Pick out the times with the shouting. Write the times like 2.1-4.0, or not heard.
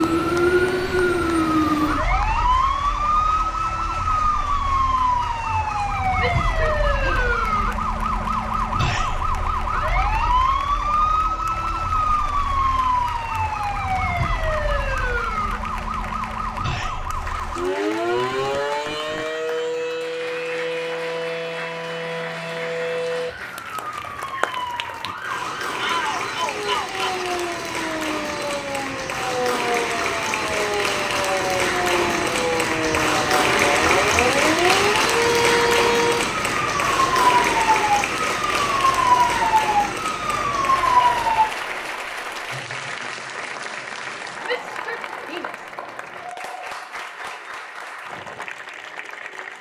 6.2-7.3, 25.8-27.2, 44.4-45.6.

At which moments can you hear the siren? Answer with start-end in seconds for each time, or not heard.
0.0-41.5.